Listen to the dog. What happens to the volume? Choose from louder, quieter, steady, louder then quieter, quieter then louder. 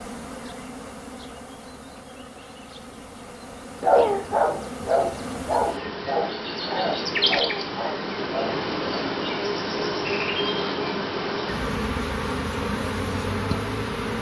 quieter.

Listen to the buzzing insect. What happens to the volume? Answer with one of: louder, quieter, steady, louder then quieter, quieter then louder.
louder.